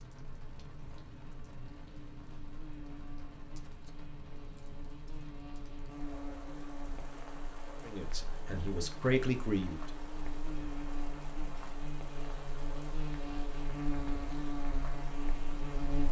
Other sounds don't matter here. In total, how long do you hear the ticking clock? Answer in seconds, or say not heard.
not heard.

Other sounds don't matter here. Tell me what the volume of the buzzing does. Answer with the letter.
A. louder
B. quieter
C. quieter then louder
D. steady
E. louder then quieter
A.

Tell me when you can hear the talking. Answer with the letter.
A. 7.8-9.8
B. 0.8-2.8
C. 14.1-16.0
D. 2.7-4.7
A.